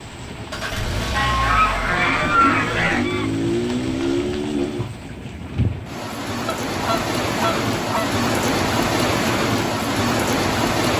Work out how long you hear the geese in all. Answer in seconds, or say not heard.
4 s.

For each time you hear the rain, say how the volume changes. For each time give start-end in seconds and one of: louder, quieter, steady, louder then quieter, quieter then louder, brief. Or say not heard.
0.0-10.9 louder.